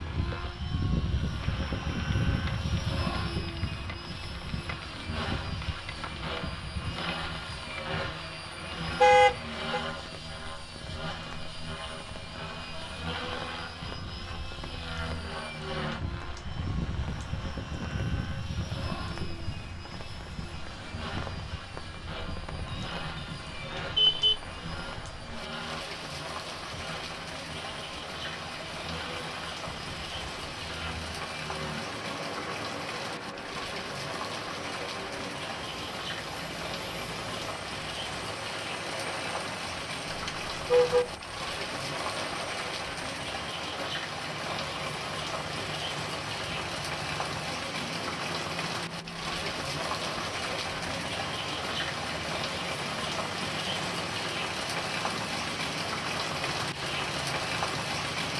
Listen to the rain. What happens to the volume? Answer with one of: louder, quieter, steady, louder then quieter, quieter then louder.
louder.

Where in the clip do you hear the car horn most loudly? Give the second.
9 s.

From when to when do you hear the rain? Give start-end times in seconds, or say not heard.
0.0-58.3.